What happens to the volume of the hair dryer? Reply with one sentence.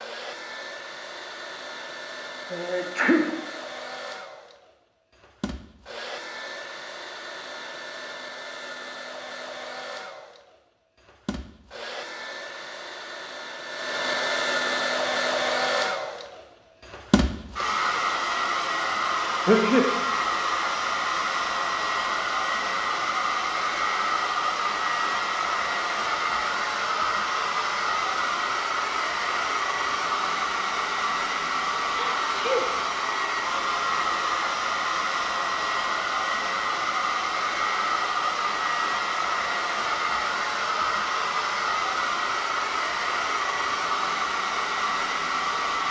The loudness of the hair dryer goes up.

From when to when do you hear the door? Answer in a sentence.
The door can't be heard in this clip.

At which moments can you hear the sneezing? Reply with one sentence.
The sneezing can be heard from 2.5 to 3.3 s, from 19.4 to 19.9 s and from 31.9 to 32.6 s.